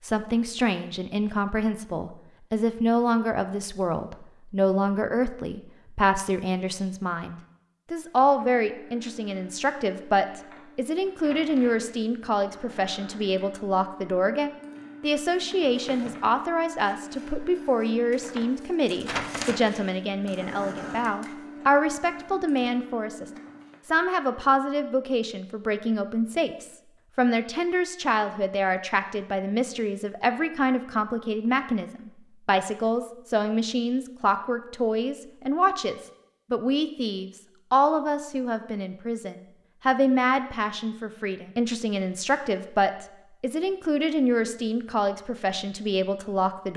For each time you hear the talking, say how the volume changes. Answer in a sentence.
The talking can be heard from 0.0 to 46.7 s, at a steady volume.